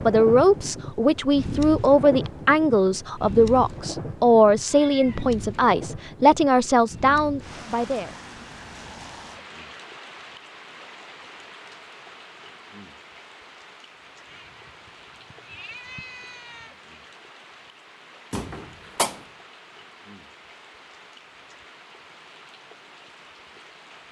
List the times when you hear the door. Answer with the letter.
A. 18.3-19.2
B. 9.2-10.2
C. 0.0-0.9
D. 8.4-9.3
A.